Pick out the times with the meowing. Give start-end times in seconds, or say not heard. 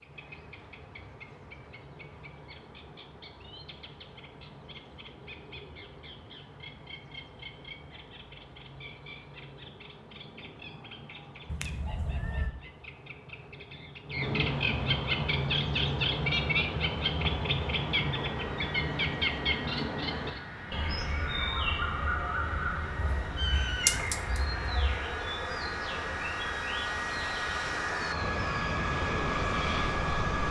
11.4-12.6, 22.9-25.0.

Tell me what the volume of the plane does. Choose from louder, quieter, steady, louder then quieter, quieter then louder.
louder.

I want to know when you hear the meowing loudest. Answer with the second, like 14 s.
24 s.